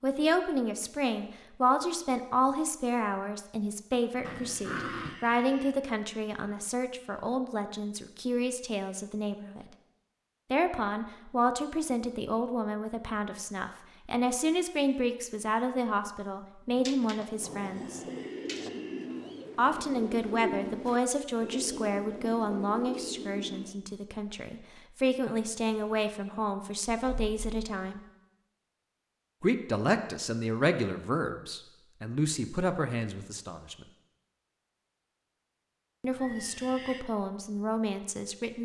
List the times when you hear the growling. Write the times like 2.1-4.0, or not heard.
4.2-5.2, 16.9-18.7, 27.1-27.6.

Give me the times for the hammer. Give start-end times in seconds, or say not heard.
not heard.